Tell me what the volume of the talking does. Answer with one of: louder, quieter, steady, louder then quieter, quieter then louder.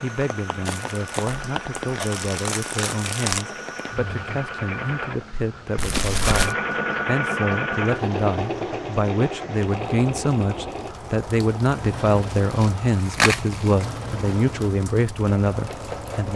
louder.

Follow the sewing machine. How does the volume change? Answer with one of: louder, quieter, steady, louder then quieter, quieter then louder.
louder then quieter.